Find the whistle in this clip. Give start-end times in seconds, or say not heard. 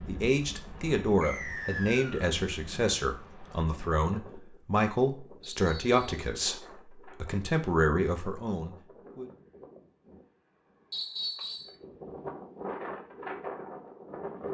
1.2-2.3, 5.5-6.0, 10.9-11.8.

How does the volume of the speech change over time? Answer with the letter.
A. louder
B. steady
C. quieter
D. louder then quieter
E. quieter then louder
B.